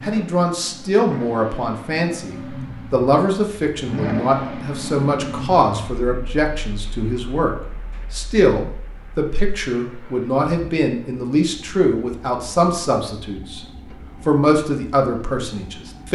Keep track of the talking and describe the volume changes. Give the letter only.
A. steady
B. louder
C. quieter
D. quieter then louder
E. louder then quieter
A.